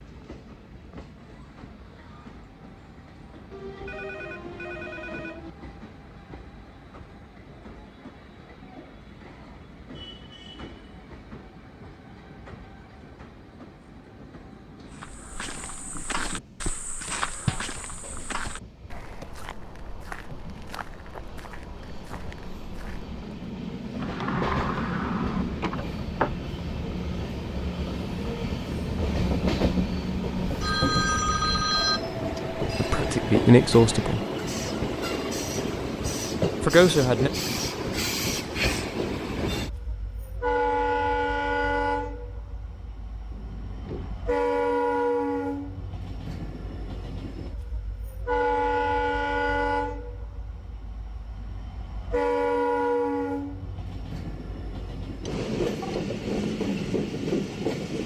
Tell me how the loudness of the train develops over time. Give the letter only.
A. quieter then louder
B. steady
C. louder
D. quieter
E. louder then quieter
C.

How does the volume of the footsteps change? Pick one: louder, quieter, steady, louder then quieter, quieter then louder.
quieter.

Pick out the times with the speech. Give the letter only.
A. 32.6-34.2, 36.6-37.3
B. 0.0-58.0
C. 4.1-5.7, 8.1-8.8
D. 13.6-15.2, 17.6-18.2
A.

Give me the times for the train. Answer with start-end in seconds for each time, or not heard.
0.0-58.0.